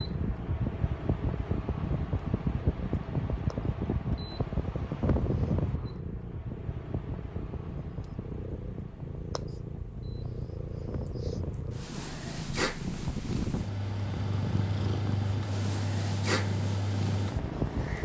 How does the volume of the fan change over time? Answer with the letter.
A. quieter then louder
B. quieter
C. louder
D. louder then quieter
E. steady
A.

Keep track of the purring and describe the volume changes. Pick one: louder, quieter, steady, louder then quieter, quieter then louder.
louder.